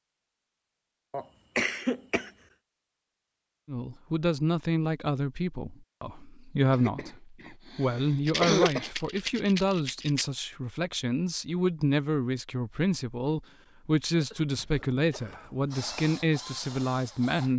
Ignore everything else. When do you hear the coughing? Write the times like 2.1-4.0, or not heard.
1.1-2.3, 6.7-8.9, 14.1-15.6.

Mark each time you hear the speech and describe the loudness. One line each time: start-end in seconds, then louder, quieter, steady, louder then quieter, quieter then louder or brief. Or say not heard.
3.6-17.5 steady.